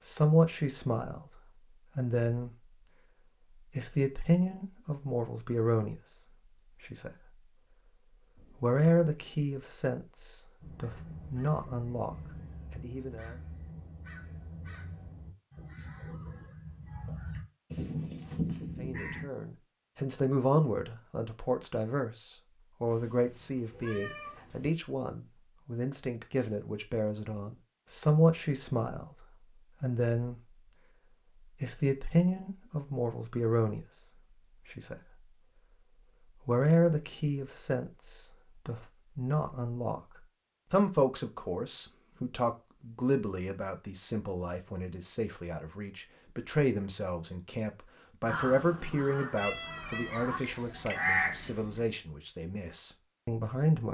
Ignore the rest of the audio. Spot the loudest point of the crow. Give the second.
51 s.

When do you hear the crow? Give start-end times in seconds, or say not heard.
10.6-19.2, 48.2-51.5.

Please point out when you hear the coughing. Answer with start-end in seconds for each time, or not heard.
not heard.